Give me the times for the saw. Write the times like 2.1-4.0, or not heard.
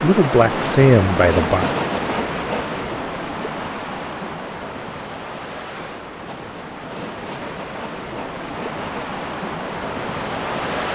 0.5-2.8, 6.2-9.2.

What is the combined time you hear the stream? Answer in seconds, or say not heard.
11 s.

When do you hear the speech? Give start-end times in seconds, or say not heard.
0.0-1.7.